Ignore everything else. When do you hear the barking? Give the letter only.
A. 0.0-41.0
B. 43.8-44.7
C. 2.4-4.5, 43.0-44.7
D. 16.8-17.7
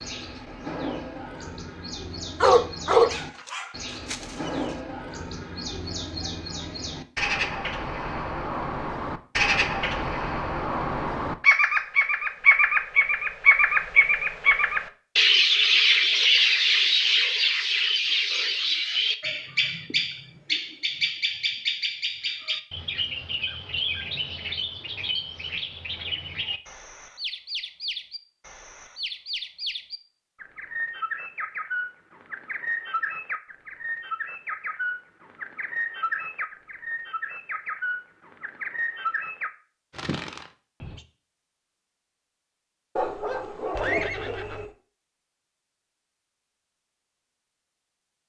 C.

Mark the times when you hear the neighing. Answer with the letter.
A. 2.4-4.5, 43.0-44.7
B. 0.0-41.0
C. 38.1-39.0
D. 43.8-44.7
D.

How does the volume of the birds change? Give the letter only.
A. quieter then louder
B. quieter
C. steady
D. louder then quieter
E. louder
D.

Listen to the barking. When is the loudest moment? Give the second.
3 s.